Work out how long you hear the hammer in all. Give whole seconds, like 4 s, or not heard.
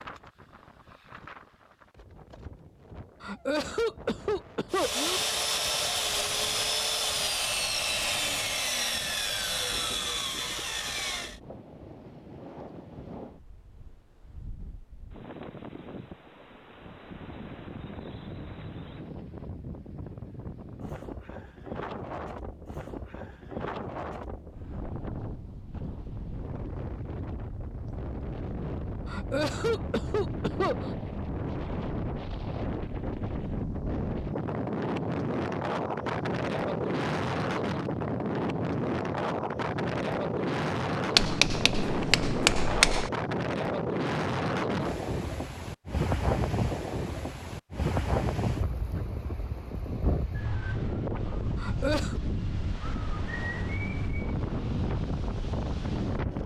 2 s.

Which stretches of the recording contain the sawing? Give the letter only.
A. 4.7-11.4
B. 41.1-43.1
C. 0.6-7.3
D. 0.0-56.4
A.